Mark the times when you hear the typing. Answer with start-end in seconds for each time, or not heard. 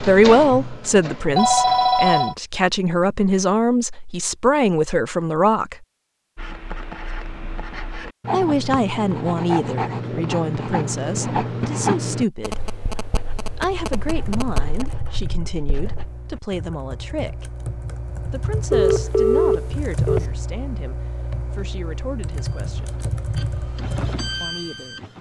13.6-24.5.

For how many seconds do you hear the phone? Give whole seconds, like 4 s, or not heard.
5 s.